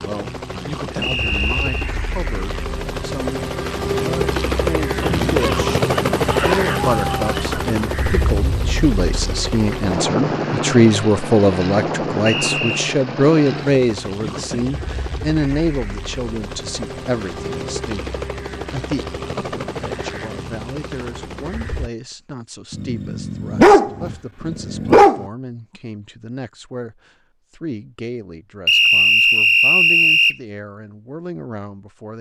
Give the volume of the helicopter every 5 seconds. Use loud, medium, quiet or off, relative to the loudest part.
loud, loud, loud, medium, medium, off, off.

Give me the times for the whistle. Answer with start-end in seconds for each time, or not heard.
1.0-1.9, 12.2-12.8, 28.6-30.4.